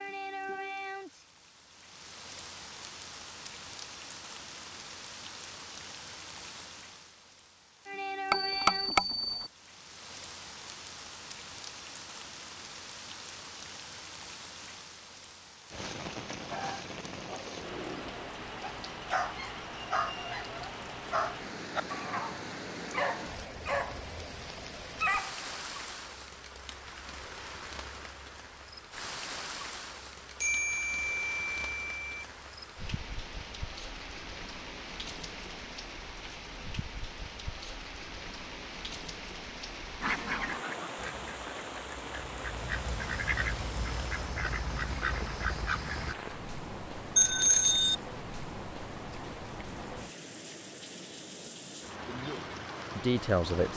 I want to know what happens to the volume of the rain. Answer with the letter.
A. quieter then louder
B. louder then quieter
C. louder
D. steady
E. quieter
D.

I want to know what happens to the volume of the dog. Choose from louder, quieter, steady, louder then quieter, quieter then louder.
louder.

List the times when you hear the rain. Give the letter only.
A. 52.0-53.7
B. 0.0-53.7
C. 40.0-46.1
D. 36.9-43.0
B.